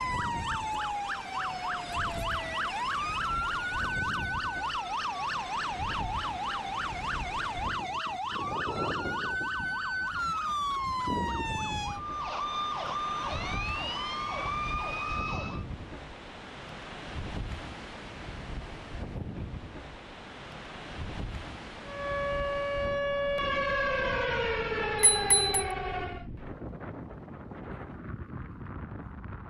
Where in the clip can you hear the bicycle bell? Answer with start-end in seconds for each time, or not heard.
25.0-25.6.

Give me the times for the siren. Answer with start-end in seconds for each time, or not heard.
0.0-15.7, 21.9-26.2.